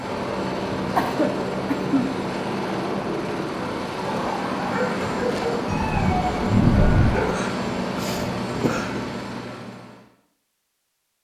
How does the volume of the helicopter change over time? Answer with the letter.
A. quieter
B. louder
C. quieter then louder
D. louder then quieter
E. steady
E.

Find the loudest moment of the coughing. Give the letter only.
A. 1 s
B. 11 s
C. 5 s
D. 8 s
A.